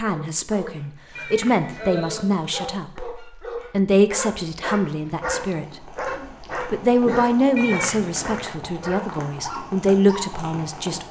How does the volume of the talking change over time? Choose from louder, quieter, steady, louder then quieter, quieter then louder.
steady.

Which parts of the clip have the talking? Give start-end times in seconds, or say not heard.
0.0-5.7, 6.5-11.0.